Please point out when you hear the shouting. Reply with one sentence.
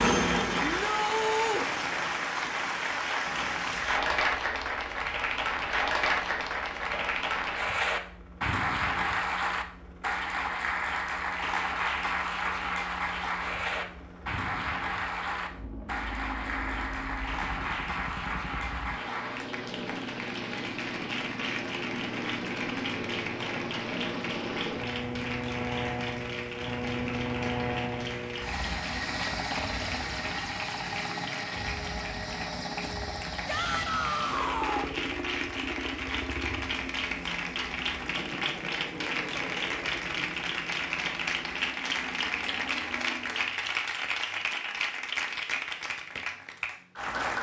The shouting can be heard from 0.6 to 1.6 s and from 33.5 to 34.9 s.